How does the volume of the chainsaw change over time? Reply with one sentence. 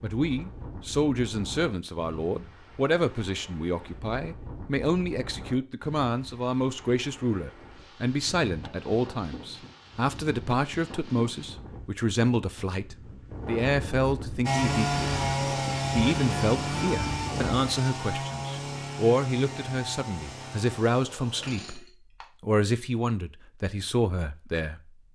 The volume of the chainsaw goes down.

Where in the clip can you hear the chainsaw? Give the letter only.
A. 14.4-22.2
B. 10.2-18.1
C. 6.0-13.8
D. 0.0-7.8
A.